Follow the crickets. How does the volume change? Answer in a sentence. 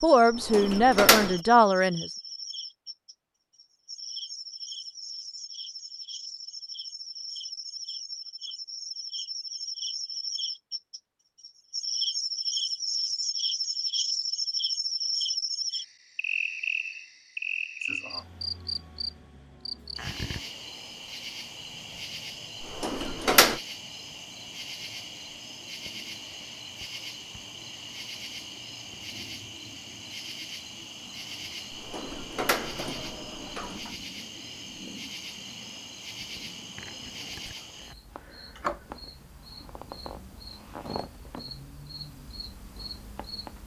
The volume of the crickets goes up, then down.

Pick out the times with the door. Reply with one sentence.
You can hear the door from 0.3 to 1.4 s, from 22.6 to 23.6 s and from 31.7 to 33.9 s.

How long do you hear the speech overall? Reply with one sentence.
You can hear the speech for 2 seconds altogether.